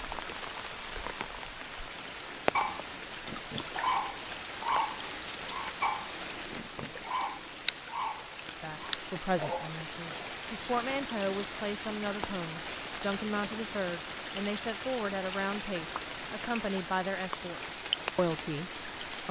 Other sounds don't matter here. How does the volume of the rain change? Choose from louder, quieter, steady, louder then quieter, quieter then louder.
steady.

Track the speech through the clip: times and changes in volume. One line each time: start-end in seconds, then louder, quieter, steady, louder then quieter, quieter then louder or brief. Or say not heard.
8.5-19.2 steady.